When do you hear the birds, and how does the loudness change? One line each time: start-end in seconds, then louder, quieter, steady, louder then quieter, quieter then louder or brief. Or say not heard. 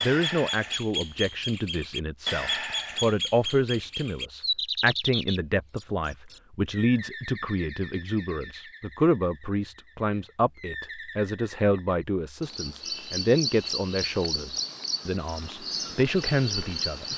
0.0-17.1 quieter then louder.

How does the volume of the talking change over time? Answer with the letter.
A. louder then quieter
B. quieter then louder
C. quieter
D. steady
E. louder
D.